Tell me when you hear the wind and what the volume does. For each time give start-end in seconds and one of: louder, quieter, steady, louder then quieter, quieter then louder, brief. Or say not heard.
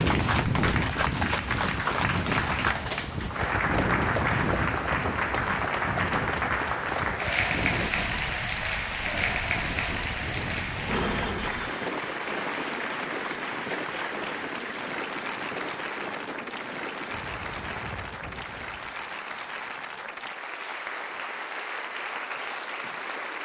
0.0-19.1 quieter.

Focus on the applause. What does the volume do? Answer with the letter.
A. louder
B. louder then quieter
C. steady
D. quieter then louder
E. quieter
E.